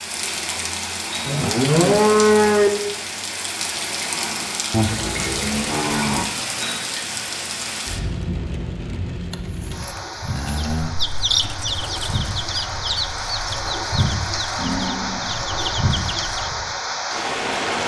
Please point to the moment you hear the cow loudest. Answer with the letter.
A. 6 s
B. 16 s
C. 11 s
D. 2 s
D.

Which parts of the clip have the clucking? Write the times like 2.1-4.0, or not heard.
10.8-16.6.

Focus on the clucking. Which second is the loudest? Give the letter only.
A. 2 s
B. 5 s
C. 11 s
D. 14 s
C.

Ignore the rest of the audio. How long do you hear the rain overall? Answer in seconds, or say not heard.
18 s.